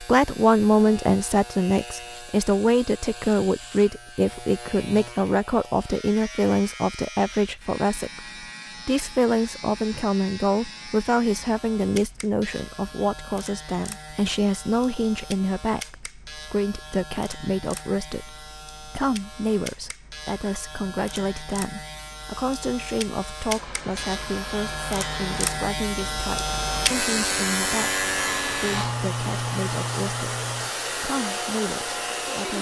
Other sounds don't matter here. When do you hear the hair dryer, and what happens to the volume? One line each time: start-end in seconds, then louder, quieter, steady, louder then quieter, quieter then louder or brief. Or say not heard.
23.4-32.5 louder.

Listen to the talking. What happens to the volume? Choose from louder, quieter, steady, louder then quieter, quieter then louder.
quieter.